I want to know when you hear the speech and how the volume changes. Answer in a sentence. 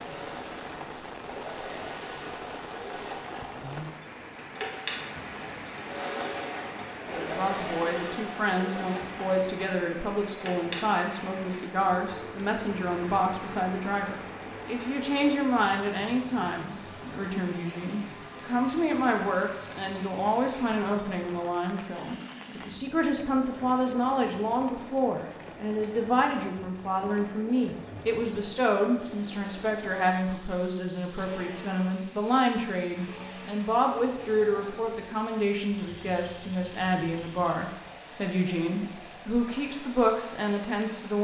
You can hear the speech from 7.0 to 41.1 s, at a steady volume.